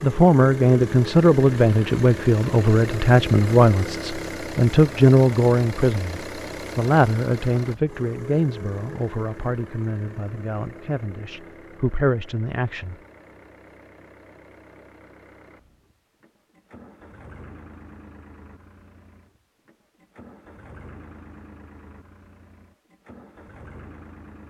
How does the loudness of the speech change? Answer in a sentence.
The loudness of the speech goes down.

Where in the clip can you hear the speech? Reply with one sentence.
You can hear the speech from 0.0 to 12.9 s.